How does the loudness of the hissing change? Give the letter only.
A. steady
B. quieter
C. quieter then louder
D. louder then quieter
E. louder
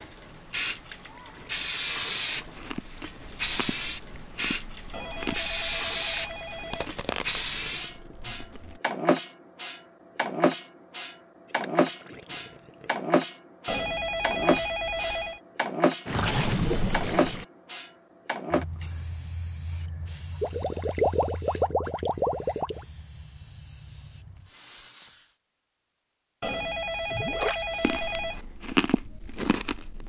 B.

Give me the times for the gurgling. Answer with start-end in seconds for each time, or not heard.
0.9-2.6, 6.2-8.2, 11.6-12.9, 16.1-17.4, 20.4-22.9, 27.1-27.6.